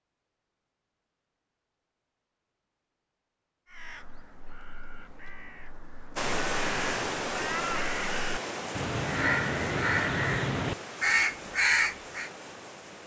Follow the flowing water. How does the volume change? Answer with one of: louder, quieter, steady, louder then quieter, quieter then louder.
quieter.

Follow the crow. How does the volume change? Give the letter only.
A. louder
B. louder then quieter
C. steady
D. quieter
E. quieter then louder
A.